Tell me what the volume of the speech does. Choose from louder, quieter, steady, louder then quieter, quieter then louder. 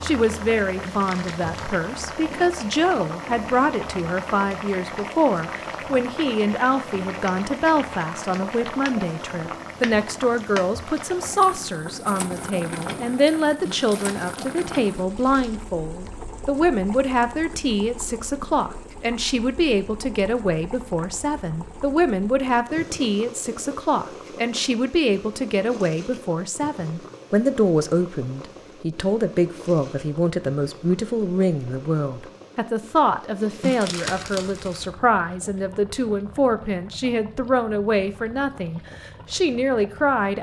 steady.